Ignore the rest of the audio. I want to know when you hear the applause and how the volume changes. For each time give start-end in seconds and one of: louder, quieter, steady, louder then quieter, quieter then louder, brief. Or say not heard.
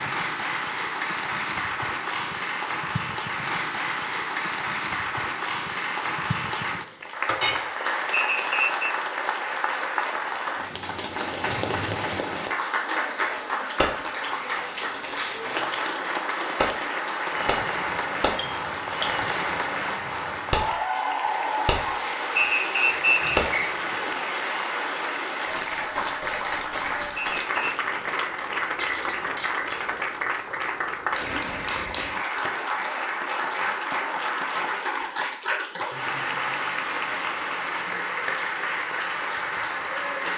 0.0-40.3 steady.